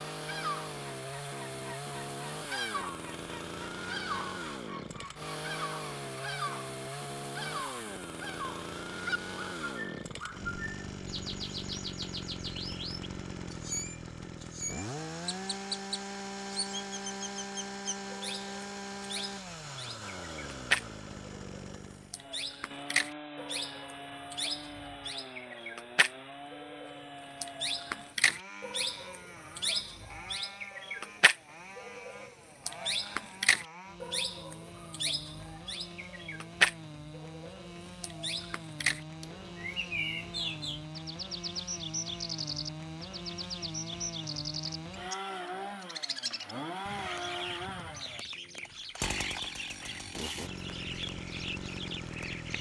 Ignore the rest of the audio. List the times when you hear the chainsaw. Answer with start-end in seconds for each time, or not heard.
0.0-52.5.